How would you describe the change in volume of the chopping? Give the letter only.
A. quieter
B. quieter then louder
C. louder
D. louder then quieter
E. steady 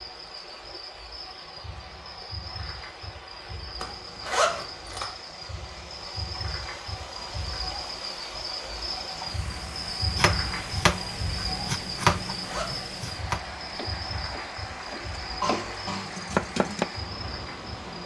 B.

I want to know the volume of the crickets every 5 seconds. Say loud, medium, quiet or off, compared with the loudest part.
medium, loud, loud, medium.